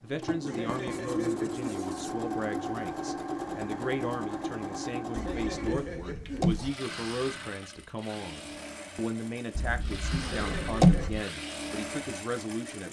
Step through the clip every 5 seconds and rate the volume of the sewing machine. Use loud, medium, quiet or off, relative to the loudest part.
loud, medium, medium.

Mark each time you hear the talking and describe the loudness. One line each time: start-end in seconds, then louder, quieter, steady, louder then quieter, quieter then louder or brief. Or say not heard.
0.0-12.8 steady.